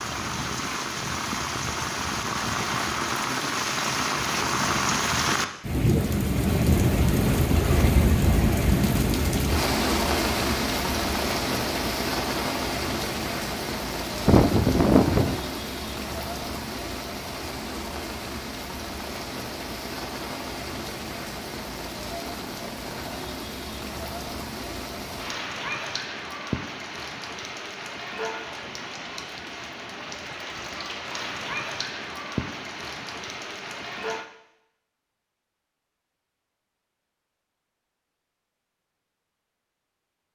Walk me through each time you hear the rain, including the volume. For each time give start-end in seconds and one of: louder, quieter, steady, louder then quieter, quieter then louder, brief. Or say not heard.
0.0-34.2 quieter.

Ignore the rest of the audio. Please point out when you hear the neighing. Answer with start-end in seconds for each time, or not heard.
14.2-15.4.